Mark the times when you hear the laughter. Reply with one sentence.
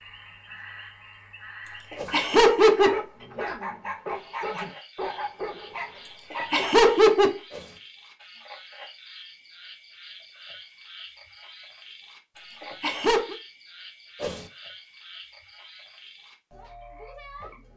You can hear the laughter from 1.6 to 3.0 s, from 6.0 to 7.4 s and from 12.3 to 13.3 s.